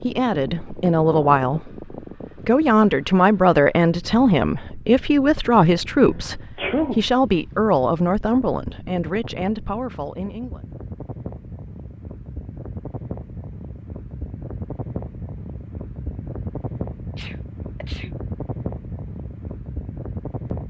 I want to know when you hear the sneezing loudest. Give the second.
7 s.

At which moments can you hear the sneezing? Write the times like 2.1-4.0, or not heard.
6.0-7.0, 17.1-18.1.